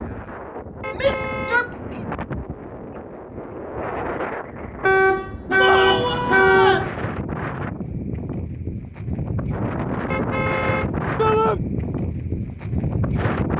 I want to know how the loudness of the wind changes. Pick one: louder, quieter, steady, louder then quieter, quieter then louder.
louder.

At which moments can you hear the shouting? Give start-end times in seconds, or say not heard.
0.9-2.0, 5.5-6.9, 11.2-11.6.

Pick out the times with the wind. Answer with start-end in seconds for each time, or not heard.
0.0-13.5.